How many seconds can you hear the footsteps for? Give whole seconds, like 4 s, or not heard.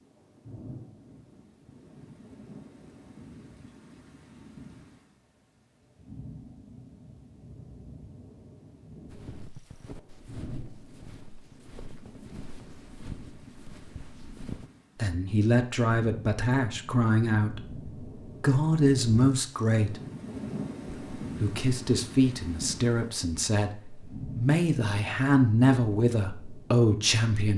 6 s.